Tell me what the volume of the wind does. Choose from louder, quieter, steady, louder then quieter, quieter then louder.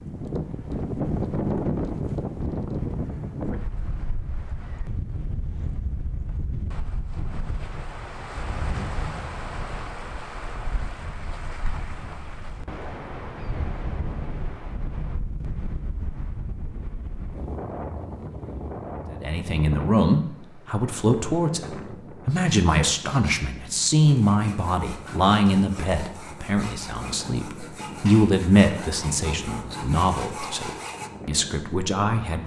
quieter.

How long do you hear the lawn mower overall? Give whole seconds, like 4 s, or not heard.
not heard.